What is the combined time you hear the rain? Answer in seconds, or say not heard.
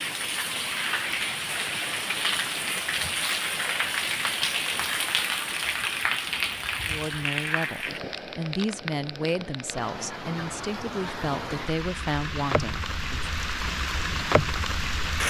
15 s.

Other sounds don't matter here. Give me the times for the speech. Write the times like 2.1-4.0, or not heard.
6.8-13.3.